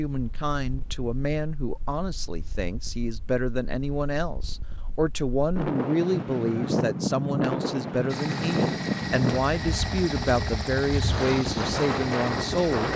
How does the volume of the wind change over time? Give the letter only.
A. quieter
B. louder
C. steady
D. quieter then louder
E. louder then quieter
B.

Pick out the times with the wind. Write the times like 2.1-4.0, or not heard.
0.1-12.9.